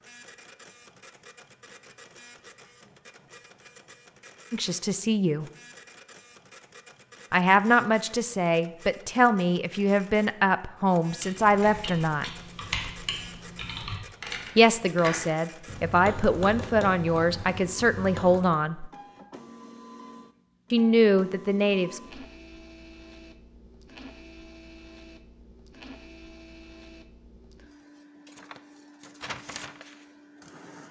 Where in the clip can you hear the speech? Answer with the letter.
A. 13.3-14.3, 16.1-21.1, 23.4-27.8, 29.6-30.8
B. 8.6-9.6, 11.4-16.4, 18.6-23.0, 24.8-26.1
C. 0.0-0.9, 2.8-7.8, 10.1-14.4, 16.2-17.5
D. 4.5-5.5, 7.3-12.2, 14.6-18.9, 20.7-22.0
D.